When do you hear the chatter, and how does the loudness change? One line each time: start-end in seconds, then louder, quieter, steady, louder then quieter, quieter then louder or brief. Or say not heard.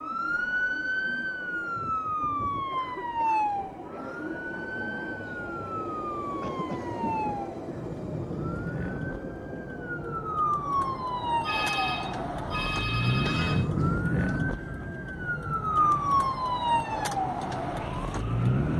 not heard.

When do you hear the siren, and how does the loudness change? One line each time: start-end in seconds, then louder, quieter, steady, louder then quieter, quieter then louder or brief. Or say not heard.
0.0-18.7 quieter then louder.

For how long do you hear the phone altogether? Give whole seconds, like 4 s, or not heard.
2 s.